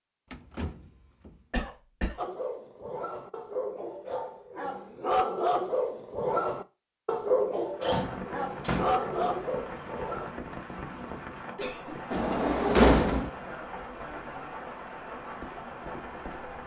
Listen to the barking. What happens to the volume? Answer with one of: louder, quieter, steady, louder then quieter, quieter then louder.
louder.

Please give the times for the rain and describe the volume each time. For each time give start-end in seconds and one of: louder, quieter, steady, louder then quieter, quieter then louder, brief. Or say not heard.
7.7-16.6 steady.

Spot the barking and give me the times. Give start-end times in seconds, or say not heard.
2.1-10.4.